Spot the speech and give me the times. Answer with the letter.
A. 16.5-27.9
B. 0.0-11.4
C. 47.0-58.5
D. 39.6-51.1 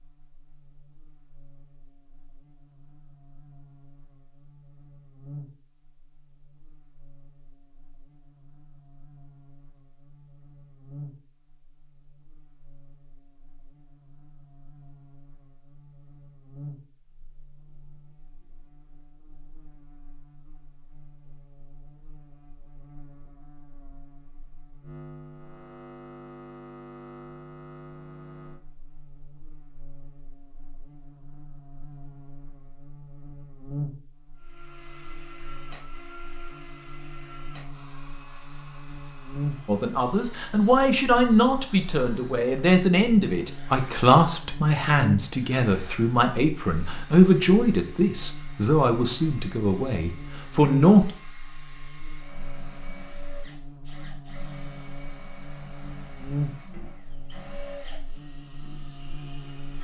D.